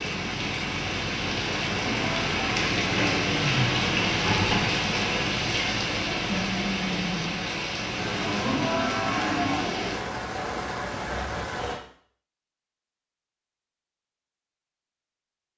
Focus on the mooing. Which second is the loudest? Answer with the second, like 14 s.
9 s.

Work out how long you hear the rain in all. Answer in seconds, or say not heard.
12 s.